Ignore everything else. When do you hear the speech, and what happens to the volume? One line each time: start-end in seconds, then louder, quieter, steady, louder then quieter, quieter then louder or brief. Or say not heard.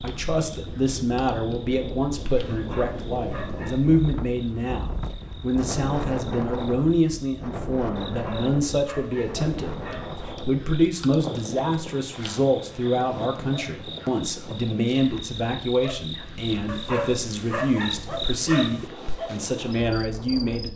0.0-20.7 steady.